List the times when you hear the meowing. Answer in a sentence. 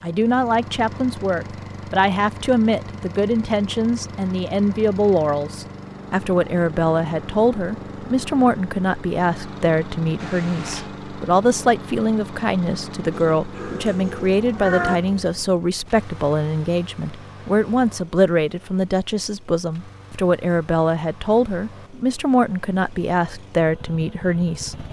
You can hear the meowing from 10.2 to 10.9 s and from 13.1 to 14.9 s.